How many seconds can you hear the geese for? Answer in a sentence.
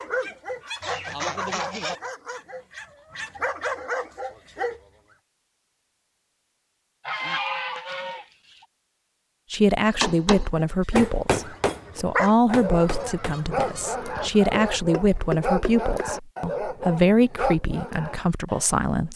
You can hear the geese for 5 seconds altogether.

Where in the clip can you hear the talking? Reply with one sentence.
The talking can be heard from 9.5 to 19.1 s.